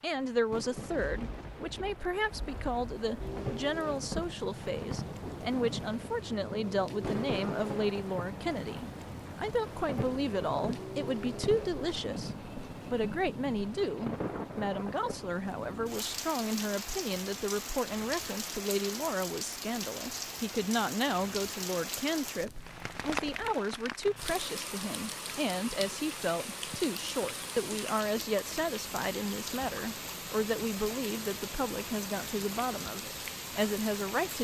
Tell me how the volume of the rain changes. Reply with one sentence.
The loudness of the rain stays about the same.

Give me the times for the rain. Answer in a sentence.
The rain can be heard from 0.0 to 34.3 s.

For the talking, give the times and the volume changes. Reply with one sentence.
You can hear the talking from 0.0 to 34.3 s, at a steady volume.